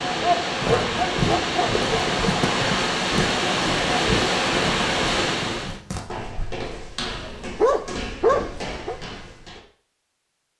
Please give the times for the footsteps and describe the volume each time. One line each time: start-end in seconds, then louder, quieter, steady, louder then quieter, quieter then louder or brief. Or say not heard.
0.6-9.6 quieter.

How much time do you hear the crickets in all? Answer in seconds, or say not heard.
not heard.